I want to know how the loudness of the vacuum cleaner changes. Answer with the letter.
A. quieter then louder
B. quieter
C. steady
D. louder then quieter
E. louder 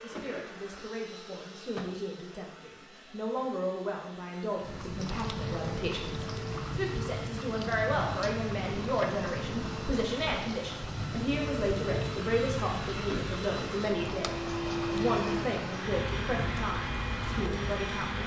E.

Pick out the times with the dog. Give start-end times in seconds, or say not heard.
not heard.